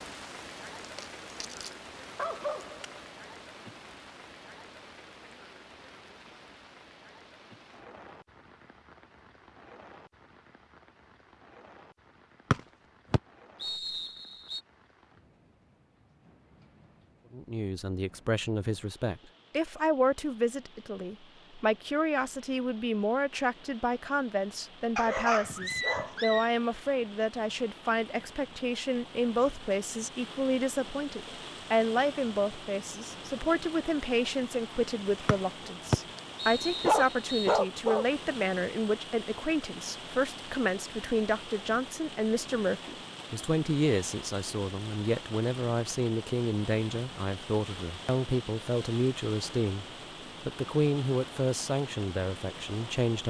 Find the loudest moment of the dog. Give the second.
37 s.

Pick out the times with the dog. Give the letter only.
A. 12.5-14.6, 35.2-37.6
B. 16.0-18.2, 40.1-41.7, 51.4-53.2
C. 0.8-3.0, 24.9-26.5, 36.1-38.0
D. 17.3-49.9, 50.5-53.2
C.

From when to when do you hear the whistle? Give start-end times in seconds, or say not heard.
12.5-14.6, 35.2-37.6.